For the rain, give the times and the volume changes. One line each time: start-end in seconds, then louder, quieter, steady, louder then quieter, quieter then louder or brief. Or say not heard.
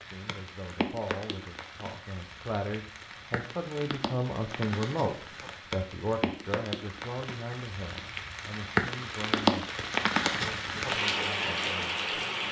0.0-12.4 louder.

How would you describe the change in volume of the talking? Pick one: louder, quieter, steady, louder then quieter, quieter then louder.
louder then quieter.